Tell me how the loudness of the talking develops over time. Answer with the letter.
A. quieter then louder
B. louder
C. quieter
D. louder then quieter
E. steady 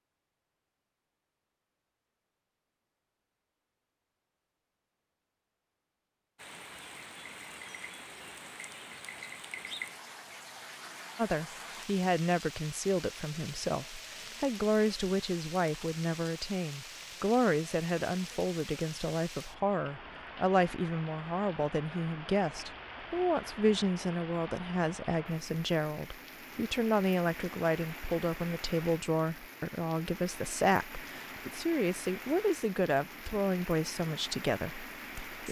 E.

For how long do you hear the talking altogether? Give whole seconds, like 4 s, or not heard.
24 s.